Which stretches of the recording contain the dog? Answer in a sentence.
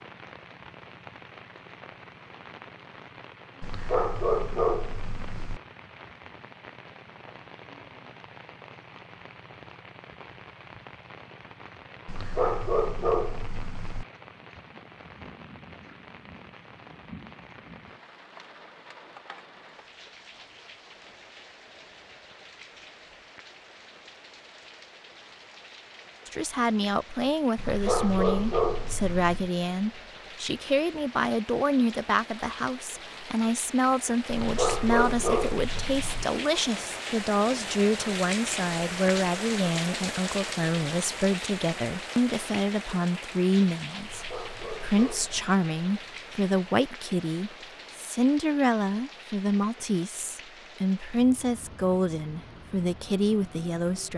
You can hear the dog from 3.6 to 5.6 s, from 12.1 to 14.1 s, from 27.6 to 29.5 s, from 34.2 to 36.2 s and from 44.0 to 45.5 s.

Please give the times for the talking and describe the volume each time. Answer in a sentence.
The talking can be heard from 26.2 to 54.1 s, at a steady volume.